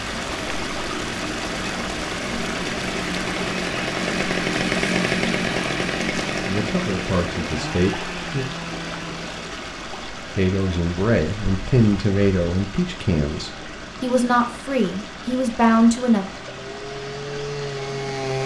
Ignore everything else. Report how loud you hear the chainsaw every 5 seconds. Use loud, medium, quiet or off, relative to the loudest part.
loud, loud, off, loud.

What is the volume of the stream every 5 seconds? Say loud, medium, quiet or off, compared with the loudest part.
loud, loud, medium, medium.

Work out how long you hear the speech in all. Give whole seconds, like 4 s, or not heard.
8 s.